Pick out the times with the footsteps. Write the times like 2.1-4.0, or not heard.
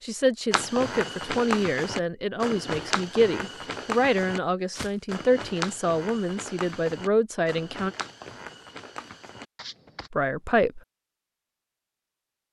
0.5-10.1.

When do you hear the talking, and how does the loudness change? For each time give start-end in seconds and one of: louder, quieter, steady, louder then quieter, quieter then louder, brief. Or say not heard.
0.0-7.9 steady
10.1-10.8 brief.